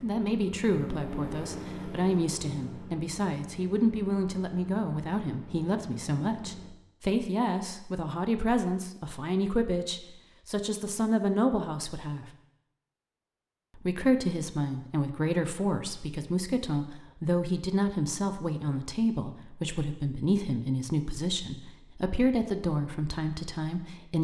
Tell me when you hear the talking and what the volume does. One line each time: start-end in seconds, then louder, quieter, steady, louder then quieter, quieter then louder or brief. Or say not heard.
0.0-12.2 steady
13.8-24.1 steady.